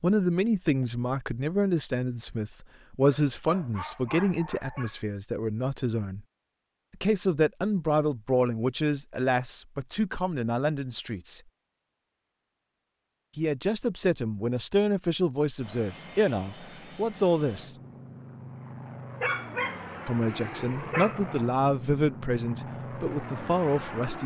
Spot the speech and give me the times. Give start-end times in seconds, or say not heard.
0.0-6.2, 6.9-11.4, 13.3-17.8, 20.1-24.2.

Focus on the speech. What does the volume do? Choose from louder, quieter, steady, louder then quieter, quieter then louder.
steady.